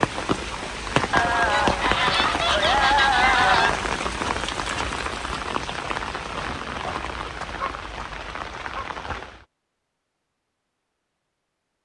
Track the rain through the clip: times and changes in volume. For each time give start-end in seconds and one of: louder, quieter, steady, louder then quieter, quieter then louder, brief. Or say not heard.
0.0-9.4 quieter.